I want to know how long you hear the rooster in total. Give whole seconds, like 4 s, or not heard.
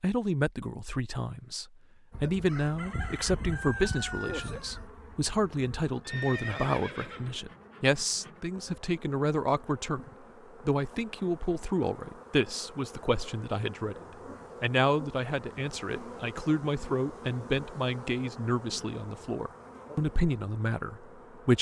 3 s.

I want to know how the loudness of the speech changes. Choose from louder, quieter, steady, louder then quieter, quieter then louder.
steady.